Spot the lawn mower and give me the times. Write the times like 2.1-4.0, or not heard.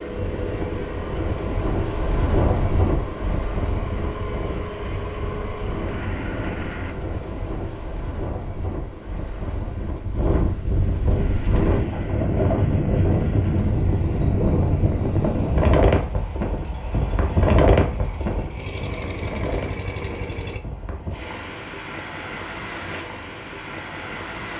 0.0-7.0, 11.1-20.6.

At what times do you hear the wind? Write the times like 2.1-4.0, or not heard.
0.0-24.5.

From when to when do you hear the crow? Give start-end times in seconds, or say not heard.
not heard.